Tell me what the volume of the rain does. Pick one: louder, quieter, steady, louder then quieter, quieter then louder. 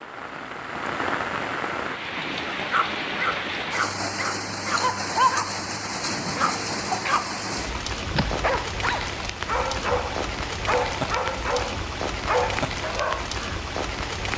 steady.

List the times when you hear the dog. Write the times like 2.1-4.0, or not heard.
2.3-13.6.